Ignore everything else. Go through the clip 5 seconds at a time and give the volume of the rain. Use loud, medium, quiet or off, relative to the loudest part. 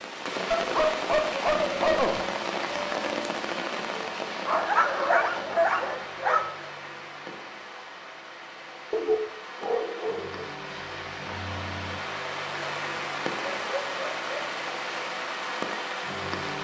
loud, medium, loud, loud.